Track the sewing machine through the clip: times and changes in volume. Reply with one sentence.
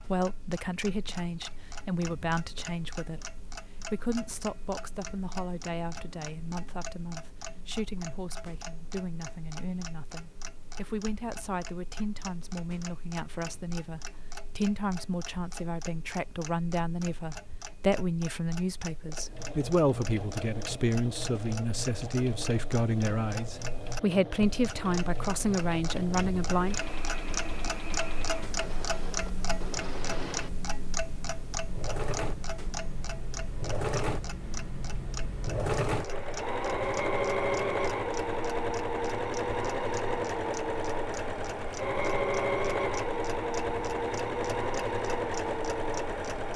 You can hear the sewing machine from 19.2 to 46.5 s, getting louder.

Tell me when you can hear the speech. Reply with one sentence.
You can hear the speech from 0.0 to 26.8 s.